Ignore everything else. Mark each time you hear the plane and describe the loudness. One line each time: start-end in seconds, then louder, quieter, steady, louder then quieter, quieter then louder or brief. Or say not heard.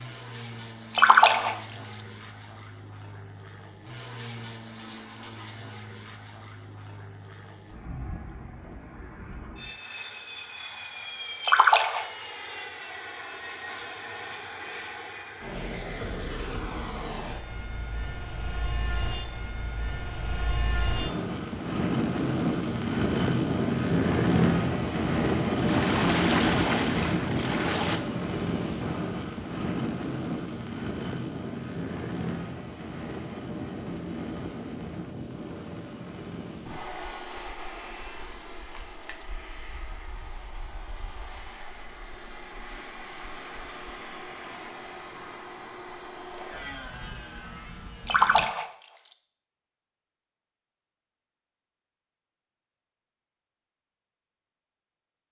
0.0-48.5 louder then quieter.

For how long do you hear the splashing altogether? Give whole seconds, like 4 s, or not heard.
6 s.